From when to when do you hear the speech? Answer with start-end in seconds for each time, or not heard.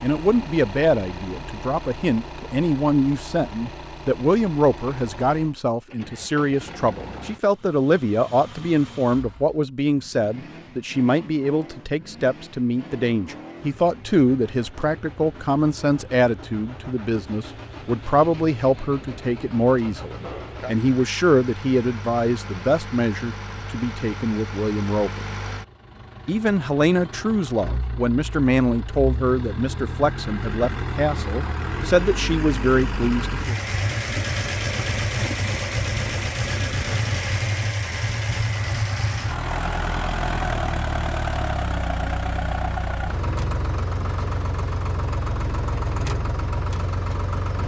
0.0-25.2, 26.2-33.5.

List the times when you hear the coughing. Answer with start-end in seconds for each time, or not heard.
not heard.